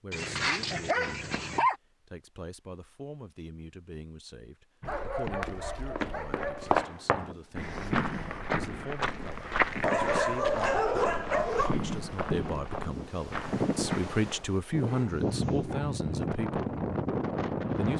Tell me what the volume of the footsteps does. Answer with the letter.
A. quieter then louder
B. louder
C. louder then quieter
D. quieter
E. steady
D.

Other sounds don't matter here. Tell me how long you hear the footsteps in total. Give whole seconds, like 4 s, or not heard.
9 s.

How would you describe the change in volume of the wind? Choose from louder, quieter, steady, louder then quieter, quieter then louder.
louder.